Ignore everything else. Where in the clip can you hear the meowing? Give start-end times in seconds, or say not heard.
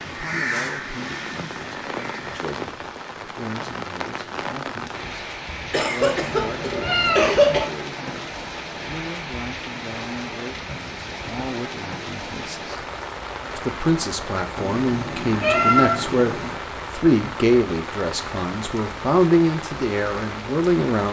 6.0-7.7, 14.6-16.5.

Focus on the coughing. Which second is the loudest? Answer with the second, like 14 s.
7 s.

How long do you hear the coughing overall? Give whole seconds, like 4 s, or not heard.
2 s.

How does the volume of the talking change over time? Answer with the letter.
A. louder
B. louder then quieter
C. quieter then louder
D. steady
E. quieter
A.